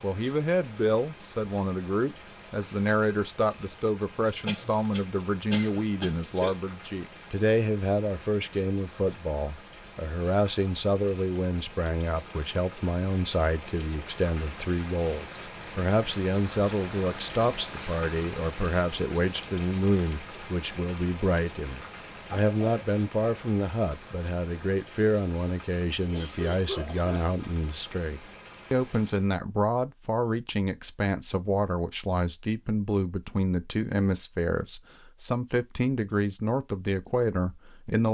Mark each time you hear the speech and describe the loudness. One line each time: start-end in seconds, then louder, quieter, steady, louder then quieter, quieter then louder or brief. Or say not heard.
0.0-38.0 steady.